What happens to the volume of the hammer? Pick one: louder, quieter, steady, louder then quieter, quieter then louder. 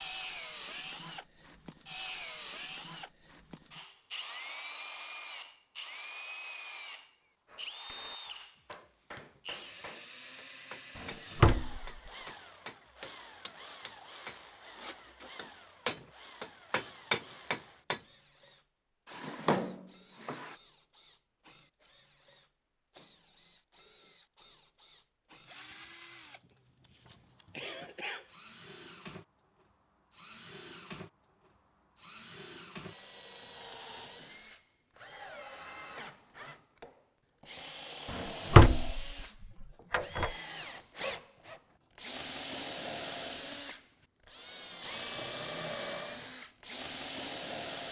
louder.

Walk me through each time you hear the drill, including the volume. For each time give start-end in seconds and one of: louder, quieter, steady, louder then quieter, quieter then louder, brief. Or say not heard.
0.0-47.8 quieter then louder.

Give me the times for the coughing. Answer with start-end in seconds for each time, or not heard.
26.3-28.4.